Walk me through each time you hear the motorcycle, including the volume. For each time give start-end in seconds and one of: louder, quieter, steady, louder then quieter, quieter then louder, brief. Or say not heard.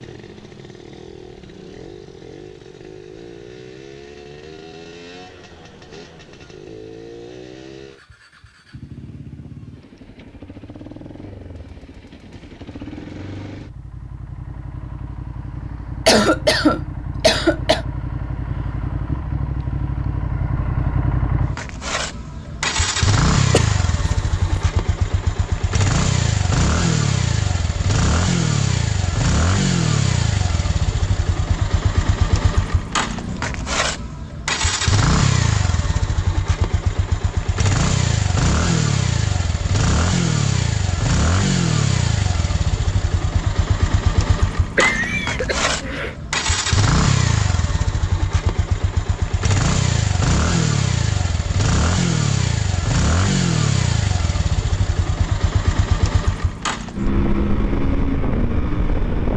0.0-59.3 louder.